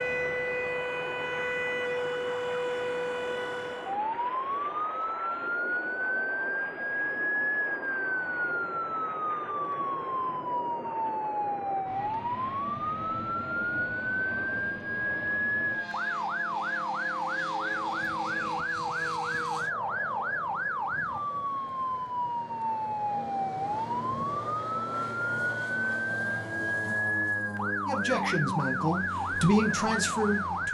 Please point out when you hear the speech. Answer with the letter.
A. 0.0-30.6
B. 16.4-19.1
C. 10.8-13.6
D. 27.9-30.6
D.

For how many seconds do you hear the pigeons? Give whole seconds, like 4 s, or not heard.
not heard.